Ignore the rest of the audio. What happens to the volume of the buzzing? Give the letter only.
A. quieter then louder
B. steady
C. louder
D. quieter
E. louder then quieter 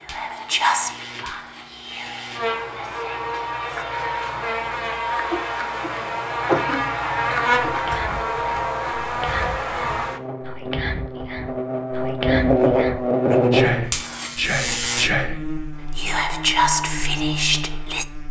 E.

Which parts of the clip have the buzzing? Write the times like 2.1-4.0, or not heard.
0.0-18.2.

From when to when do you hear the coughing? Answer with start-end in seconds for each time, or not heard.
5.3-6.9.